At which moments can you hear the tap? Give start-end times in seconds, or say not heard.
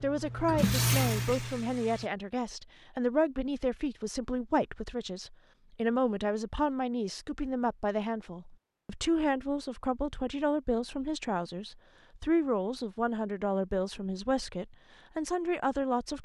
0.0-2.1.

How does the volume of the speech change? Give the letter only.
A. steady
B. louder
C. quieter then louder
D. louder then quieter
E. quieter
A.